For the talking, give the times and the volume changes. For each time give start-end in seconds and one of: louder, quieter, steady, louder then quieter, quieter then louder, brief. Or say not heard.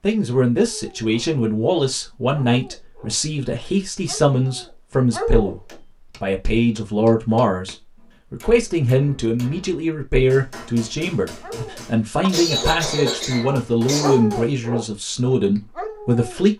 0.0-16.5 steady.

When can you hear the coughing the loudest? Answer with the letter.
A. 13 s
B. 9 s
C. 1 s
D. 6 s
A.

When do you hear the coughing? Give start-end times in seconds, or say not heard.
12.3-14.2.